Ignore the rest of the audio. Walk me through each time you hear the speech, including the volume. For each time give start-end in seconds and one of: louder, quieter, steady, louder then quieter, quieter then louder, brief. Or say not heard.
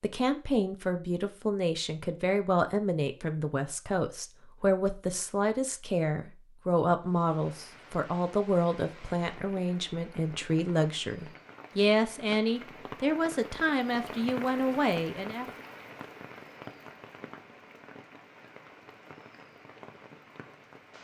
0.0-15.4 steady.